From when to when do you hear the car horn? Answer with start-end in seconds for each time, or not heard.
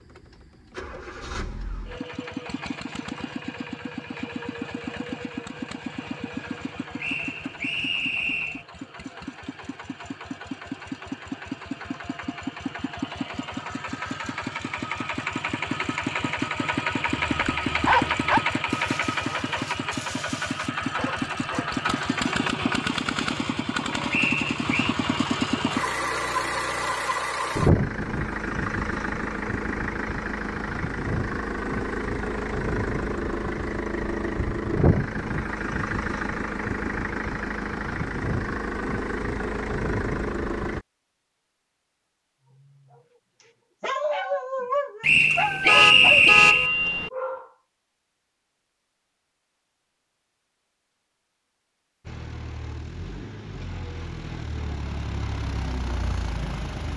45.6-47.1.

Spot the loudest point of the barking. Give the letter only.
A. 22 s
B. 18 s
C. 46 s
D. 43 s
B.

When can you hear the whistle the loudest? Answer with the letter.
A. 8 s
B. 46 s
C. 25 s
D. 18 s
B.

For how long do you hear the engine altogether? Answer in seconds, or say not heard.
46 s.